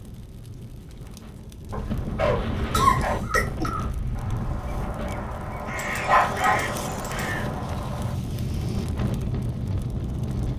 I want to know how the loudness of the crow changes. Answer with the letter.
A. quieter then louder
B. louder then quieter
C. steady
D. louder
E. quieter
B.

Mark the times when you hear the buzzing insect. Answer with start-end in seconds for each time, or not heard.
not heard.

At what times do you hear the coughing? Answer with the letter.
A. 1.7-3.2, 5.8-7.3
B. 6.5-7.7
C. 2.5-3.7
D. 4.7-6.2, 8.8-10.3
C.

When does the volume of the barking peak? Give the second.
6 s.